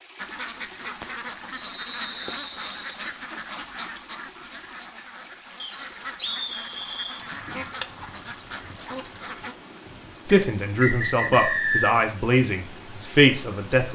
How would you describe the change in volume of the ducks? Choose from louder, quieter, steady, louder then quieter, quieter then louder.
quieter then louder.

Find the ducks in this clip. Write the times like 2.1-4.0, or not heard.
0.1-9.6.